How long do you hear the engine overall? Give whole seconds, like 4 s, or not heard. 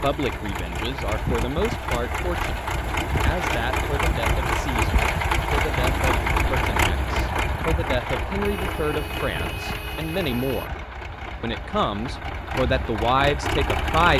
14 s.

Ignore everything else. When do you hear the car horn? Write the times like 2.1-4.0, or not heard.
8.4-10.7.